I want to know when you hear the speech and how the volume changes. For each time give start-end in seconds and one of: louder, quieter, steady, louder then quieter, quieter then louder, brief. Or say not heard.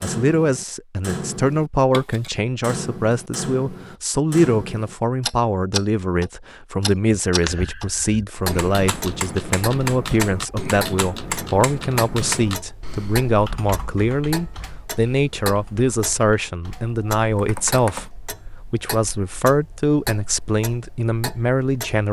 0.0-22.0 steady.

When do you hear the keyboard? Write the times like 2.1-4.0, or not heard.
7.2-18.1.